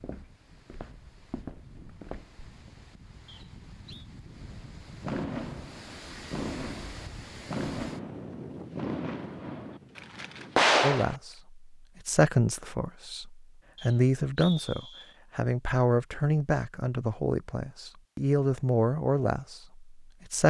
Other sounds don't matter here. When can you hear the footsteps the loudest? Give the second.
1 s.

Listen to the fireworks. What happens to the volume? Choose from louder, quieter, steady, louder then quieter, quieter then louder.
louder.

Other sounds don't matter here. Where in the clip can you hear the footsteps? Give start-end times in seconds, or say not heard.
0.0-2.9.